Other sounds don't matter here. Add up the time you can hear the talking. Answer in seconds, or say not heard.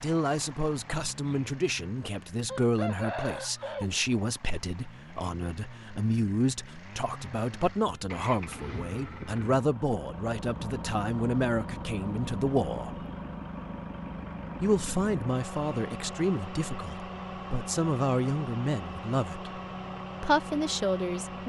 19 s.